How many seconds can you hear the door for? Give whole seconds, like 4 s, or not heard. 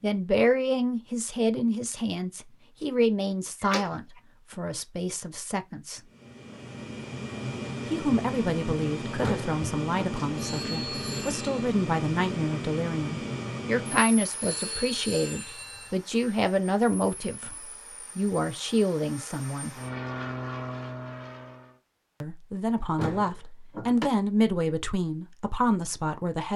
3 s.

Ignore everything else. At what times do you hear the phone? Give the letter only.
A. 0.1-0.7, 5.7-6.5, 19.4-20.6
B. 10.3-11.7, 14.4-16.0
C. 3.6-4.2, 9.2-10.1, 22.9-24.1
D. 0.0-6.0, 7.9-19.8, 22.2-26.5
B.